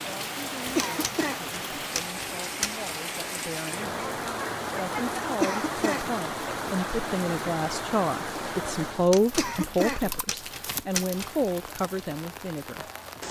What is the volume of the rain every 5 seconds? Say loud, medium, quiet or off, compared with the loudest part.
loud, loud, medium.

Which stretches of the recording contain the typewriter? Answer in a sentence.
The typewriter can be heard from 0.7 to 2.9 s and from 8.9 to 11.3 s.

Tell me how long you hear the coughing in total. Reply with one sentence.
You can hear the coughing for 2 seconds altogether.